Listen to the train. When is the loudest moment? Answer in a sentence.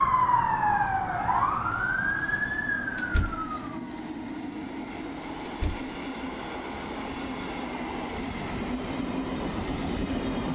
The loudest moment of the train is at 10 seconds.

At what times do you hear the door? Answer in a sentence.
You can hear the door from 3.0 to 3.5 s and from 5.5 to 5.9 s.